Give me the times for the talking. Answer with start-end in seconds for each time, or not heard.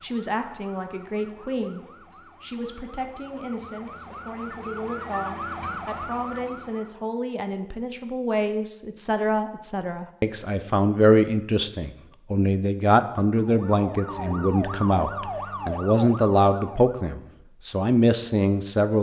0.0-18.9.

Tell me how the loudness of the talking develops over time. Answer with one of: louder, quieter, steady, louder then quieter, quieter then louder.
louder.